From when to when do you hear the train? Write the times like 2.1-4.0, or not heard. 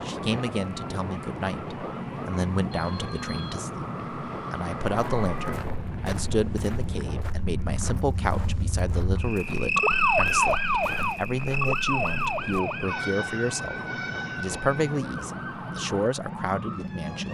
0.0-17.2.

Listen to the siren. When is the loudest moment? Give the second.
10 s.